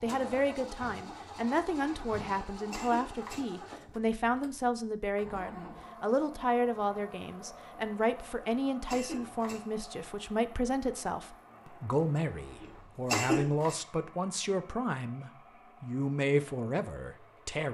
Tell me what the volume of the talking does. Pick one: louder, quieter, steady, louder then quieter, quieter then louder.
steady.